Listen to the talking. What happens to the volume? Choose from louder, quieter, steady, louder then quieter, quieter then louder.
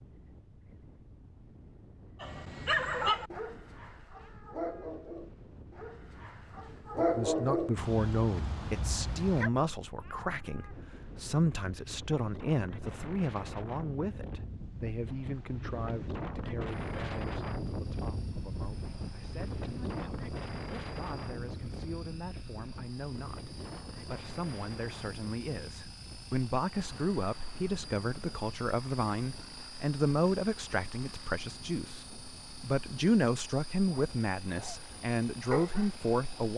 quieter then louder.